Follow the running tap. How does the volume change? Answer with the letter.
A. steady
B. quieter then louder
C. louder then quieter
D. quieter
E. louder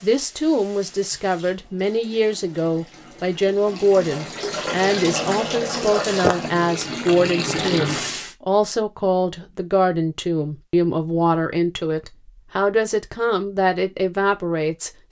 E.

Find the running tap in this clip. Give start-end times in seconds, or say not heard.
0.0-8.3.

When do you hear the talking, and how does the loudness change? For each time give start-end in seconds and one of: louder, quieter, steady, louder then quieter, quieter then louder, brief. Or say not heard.
0.0-15.0 steady.